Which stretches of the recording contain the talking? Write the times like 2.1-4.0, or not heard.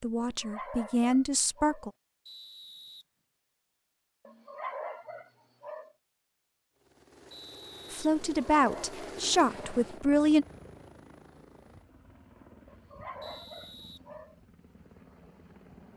0.0-1.9, 7.9-10.4.